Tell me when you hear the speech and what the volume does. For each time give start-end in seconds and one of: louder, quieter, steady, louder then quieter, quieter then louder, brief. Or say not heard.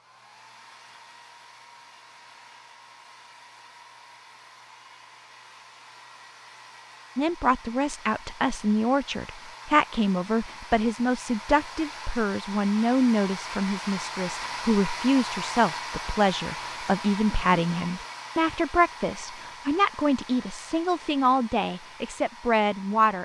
7.2-23.2 steady.